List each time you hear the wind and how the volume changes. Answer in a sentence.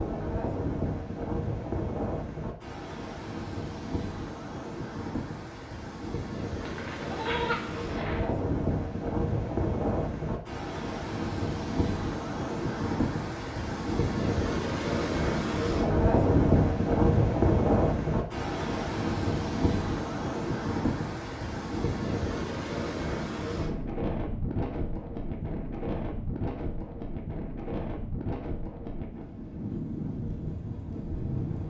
You can hear the wind from 0.0 to 31.6 s, getting louder then quieter.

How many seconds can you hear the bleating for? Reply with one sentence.
The bleating can be heard for 2 seconds in total.